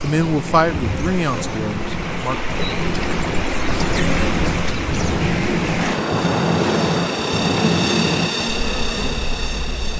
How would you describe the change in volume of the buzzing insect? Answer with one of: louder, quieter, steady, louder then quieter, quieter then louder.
louder.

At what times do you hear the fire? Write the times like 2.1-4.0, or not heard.
0.0-9.9.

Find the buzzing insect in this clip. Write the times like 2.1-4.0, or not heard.
0.0-9.9.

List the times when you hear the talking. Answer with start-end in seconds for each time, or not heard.
0.0-2.4.